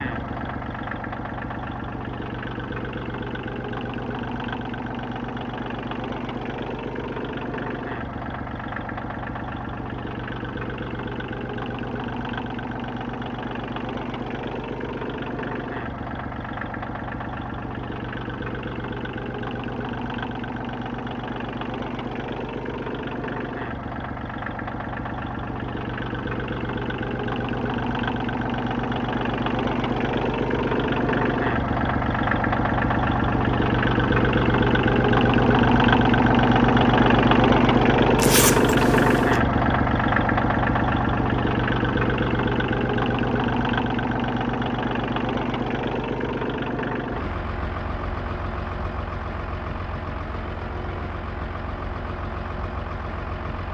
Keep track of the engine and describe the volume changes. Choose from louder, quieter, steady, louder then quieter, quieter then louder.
louder then quieter.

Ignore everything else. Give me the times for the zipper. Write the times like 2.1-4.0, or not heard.
38.1-39.4.